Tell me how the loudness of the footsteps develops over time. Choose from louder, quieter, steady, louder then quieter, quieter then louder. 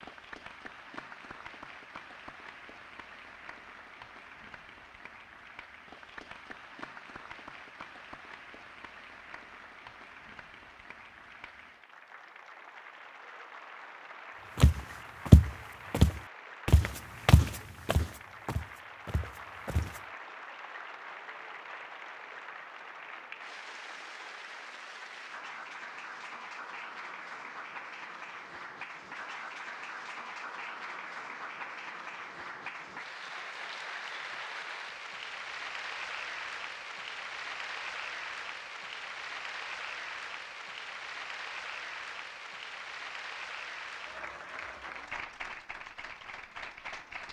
quieter.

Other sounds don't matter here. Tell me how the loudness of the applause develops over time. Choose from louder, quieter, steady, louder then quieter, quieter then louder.
louder.